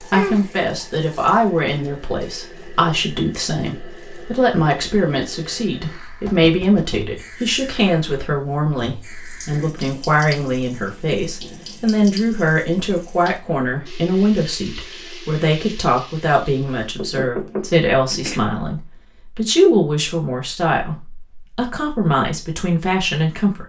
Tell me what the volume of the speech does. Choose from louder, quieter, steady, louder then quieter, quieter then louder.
steady.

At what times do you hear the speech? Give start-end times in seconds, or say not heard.
0.0-23.6.